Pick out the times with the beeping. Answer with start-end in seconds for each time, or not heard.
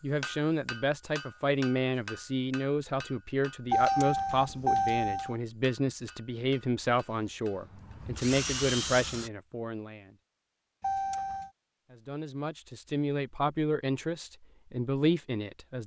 3.7-5.3, 10.8-11.5.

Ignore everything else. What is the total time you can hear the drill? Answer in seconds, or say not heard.
2 s.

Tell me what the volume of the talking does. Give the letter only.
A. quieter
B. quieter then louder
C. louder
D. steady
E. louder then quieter
D.